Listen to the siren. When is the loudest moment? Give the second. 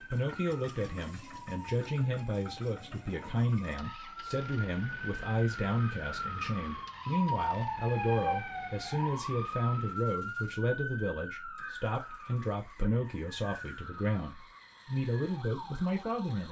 8 s.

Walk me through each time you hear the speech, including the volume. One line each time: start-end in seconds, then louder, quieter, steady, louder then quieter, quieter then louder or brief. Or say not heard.
0.1-16.4 steady.